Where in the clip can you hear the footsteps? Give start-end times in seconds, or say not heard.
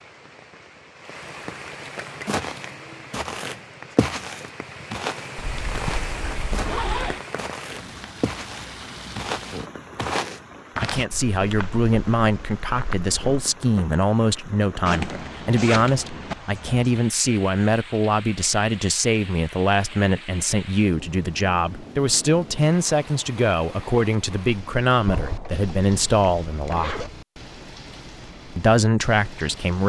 2.2-13.4.